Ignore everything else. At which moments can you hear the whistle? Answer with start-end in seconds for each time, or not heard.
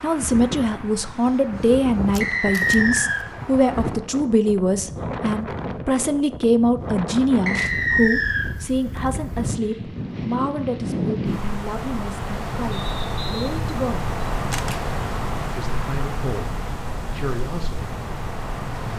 2.2-3.2, 7.5-8.5, 12.7-13.6.